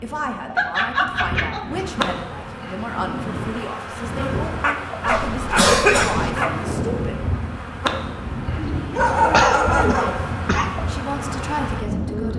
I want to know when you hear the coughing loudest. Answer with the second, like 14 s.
6 s.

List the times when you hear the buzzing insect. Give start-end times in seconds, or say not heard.
1.7-12.3.